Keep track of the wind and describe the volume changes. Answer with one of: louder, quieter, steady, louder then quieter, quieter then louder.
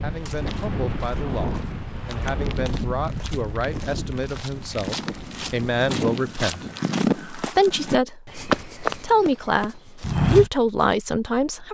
quieter.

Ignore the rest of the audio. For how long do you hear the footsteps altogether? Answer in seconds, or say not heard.
10 s.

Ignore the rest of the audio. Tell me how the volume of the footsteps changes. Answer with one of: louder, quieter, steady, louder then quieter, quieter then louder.
louder.